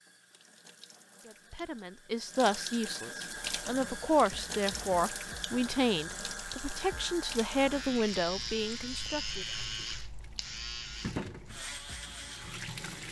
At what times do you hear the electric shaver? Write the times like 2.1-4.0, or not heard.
3.2-13.0.